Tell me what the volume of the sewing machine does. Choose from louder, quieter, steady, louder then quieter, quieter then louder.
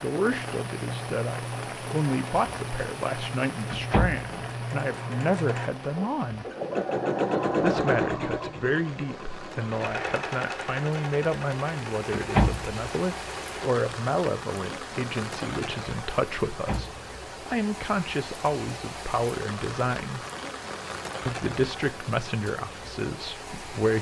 louder then quieter.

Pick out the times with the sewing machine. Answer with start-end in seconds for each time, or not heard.
0.2-13.8.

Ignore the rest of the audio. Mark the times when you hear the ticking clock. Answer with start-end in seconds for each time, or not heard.
not heard.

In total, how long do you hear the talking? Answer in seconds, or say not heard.
22 s.